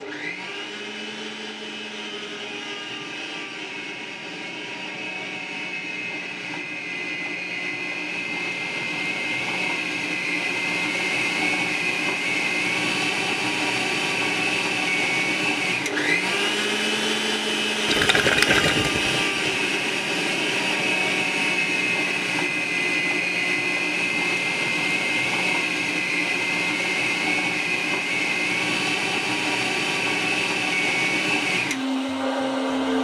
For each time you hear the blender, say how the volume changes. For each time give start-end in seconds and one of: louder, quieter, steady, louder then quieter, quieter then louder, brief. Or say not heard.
0.0-32.9 louder.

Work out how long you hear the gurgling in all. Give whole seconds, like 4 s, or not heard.
2 s.